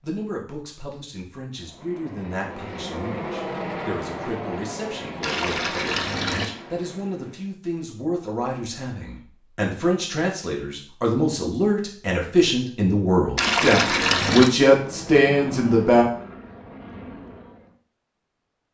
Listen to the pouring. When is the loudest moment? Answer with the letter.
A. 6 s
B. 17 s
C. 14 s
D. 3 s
C.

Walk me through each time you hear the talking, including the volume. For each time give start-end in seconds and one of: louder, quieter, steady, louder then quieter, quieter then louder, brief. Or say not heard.
0.0-16.1 louder.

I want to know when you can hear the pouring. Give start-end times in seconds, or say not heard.
5.2-6.5, 13.3-14.5.